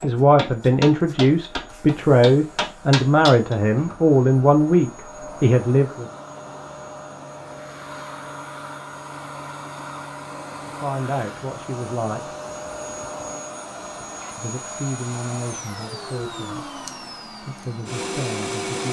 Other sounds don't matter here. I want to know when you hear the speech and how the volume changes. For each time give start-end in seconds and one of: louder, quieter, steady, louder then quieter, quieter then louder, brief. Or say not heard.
0.0-6.0 steady
10.7-12.3 brief
14.3-18.8 quieter then louder.